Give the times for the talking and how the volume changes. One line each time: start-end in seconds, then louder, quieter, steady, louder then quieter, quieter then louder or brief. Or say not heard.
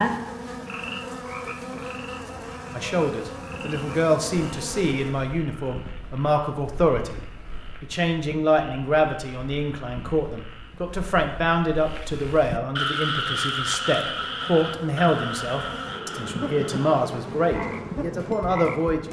2.8-19.0 steady.